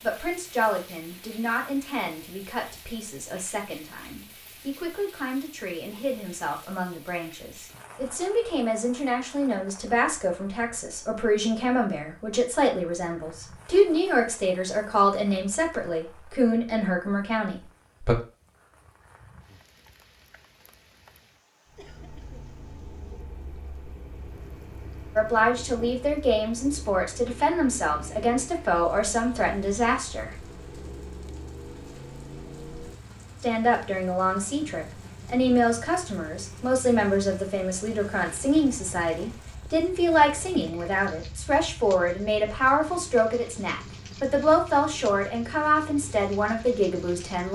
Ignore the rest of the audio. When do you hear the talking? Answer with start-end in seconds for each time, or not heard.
0.0-18.1, 25.1-30.4, 33.4-47.5.